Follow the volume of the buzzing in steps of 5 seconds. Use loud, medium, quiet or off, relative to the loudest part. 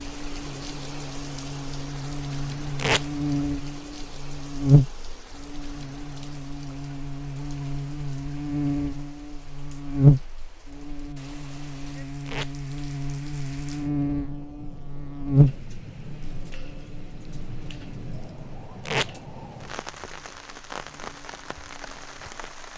loud, medium, loud, loud, quiet.